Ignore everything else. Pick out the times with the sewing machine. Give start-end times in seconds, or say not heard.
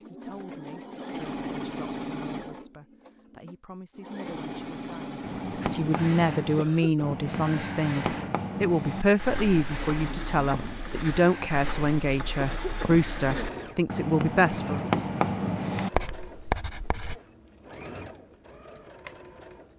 0.0-19.7.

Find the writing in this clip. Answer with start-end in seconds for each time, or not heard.
5.2-17.1.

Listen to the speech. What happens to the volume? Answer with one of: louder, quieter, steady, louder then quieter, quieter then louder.
louder.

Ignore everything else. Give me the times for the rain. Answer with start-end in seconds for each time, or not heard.
not heard.